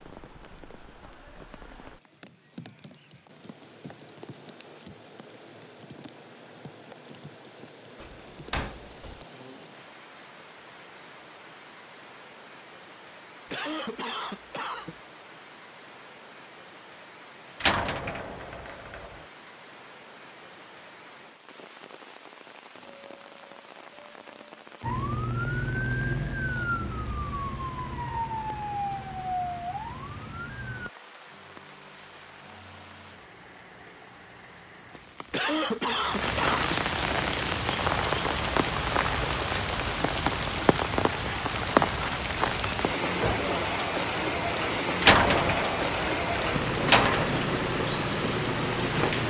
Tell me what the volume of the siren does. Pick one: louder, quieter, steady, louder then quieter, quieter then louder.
quieter.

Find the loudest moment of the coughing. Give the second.
36 s.